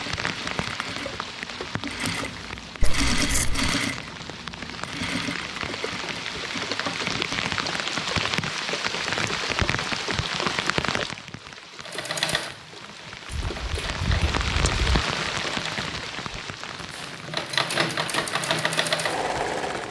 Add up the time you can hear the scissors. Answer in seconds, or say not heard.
3 s.